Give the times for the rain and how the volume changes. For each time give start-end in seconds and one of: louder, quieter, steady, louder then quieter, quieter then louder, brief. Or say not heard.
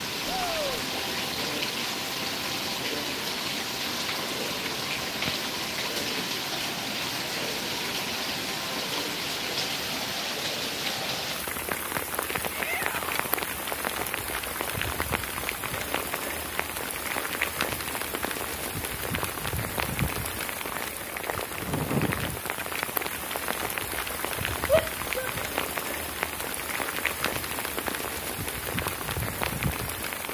0.0-30.2 steady.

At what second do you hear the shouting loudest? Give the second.
25 s.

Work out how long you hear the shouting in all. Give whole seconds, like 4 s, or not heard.
2 s.